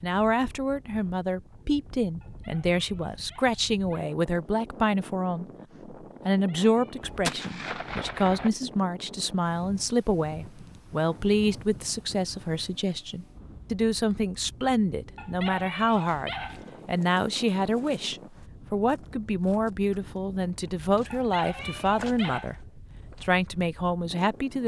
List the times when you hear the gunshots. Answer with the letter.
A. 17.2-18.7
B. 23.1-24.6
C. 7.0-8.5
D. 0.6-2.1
C.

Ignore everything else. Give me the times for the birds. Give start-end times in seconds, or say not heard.
not heard.